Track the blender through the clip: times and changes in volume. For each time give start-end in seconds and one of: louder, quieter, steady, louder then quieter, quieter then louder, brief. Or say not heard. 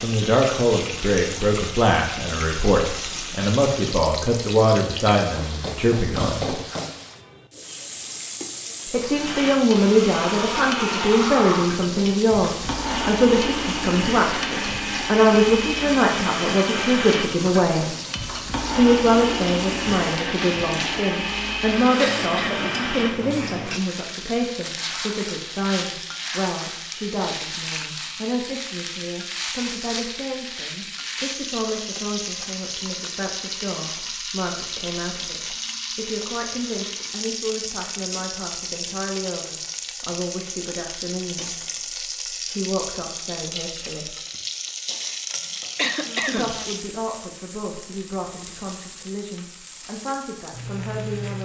9.1-23.6 steady.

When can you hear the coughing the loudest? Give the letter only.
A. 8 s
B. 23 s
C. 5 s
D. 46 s
D.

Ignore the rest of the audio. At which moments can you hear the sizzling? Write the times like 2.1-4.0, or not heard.
0.0-51.3.